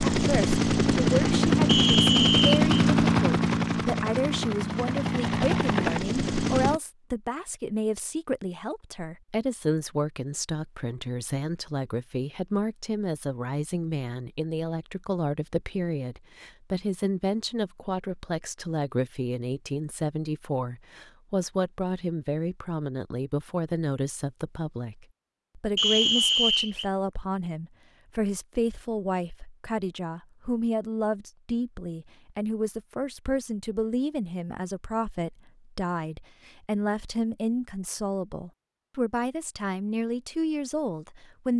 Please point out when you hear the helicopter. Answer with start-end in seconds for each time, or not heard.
0.0-6.8.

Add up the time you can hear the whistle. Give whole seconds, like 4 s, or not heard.
2 s.